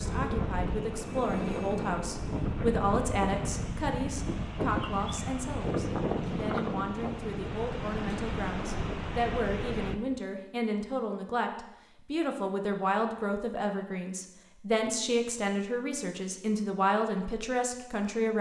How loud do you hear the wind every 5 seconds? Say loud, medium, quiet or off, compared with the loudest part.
loud, loud, off, off.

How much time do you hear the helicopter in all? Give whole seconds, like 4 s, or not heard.
4 s.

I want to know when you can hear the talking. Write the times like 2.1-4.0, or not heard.
0.0-18.3.